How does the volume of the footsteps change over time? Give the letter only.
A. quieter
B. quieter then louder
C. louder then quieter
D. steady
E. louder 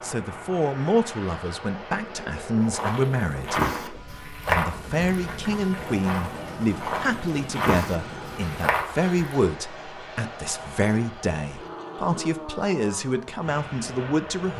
B.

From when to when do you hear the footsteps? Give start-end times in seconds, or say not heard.
2.7-9.1.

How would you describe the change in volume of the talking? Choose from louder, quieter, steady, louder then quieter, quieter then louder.
steady.